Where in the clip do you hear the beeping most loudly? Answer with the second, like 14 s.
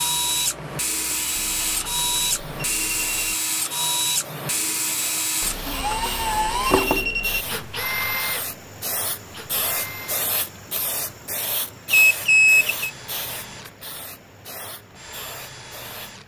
12 s.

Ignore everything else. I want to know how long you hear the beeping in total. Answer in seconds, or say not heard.
5 s.